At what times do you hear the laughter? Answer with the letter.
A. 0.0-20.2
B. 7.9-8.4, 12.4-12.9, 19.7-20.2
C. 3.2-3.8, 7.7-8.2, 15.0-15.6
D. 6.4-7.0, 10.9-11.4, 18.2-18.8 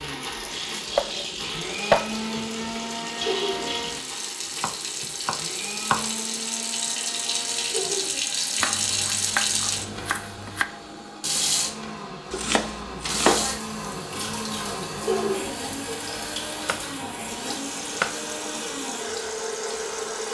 C.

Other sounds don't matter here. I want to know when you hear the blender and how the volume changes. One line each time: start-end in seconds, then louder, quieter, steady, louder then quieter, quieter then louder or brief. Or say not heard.
0.0-20.2 quieter then louder.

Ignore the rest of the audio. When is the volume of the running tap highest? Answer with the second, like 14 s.
9 s.